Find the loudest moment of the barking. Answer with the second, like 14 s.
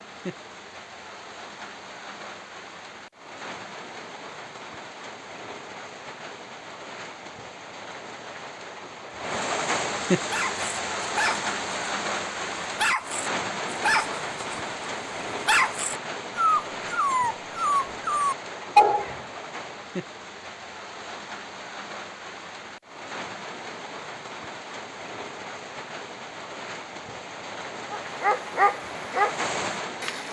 19 s.